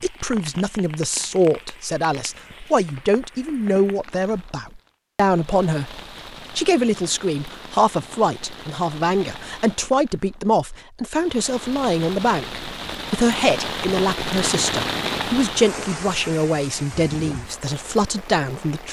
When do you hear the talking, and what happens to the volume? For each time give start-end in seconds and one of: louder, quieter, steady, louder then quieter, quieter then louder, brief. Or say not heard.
0.0-18.8 steady.